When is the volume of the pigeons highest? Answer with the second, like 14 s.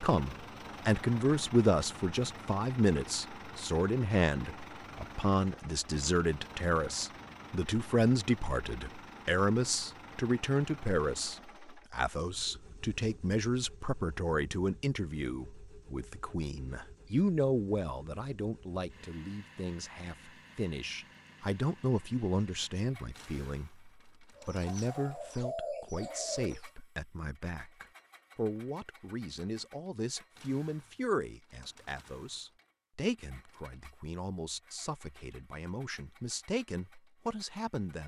26 s.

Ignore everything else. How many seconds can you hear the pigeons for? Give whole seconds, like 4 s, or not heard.
2 s.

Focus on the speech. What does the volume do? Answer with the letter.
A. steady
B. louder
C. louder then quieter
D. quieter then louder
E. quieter
E.